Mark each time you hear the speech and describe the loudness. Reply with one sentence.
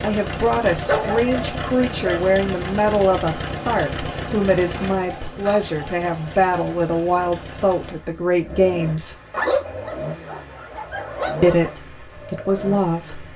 The speech can be heard from 0.0 to 9.2 s, at a steady volume; and briefly from 11.4 to 13.3 s.